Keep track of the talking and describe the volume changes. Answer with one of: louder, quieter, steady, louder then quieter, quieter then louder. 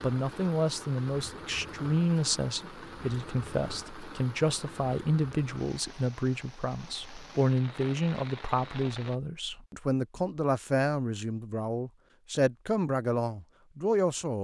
steady.